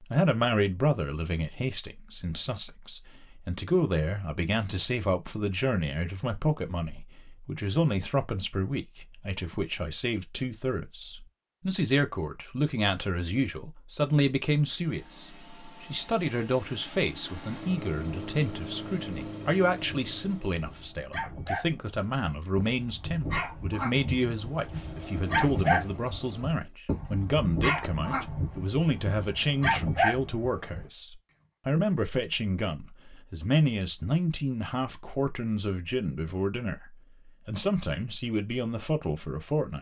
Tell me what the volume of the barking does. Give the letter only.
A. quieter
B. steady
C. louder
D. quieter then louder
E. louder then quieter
C.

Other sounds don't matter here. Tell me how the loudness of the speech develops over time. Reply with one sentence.
The volume of the speech stays about the same.